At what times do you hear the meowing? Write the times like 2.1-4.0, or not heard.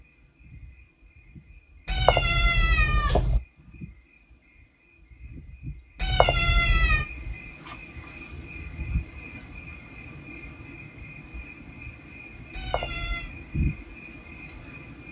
1.9-3.4, 6.0-7.0, 12.5-13.3.